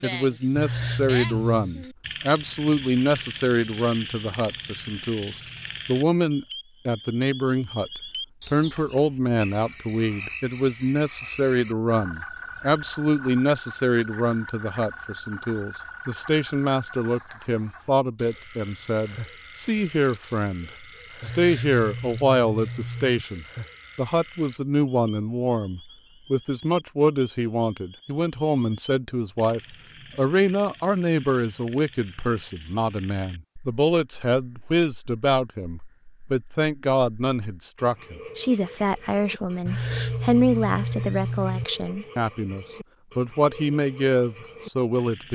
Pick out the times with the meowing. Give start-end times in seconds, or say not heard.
0.6-1.8, 21.2-23.2, 39.6-41.6.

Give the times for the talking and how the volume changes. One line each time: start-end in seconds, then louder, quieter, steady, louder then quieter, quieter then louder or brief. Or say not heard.
0.0-45.3 steady.